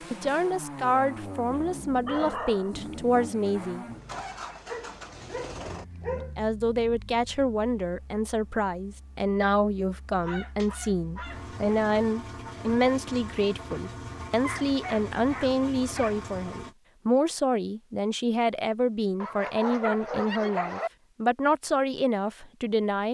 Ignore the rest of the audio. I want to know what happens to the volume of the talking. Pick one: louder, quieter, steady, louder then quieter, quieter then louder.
steady.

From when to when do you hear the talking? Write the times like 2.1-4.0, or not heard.
0.1-3.9, 6.1-23.1.